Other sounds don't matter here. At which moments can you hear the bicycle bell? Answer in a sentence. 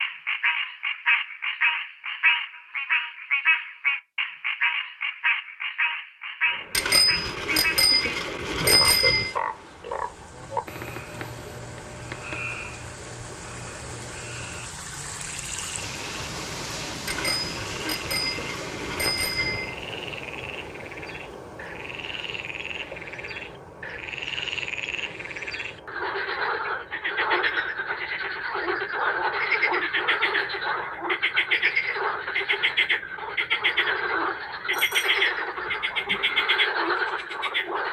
The bicycle bell can be heard from 6.7 to 9.3 s, from 17.1 to 19.8 s and from 34.7 to 36.4 s.